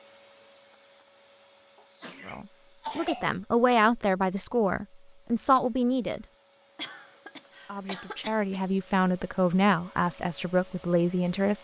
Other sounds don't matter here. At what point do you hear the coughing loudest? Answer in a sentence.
The loudest moment of the coughing is at 3 seconds.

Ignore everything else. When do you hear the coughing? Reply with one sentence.
You can hear the coughing from 1.8 to 3.3 s and from 6.8 to 8.7 s.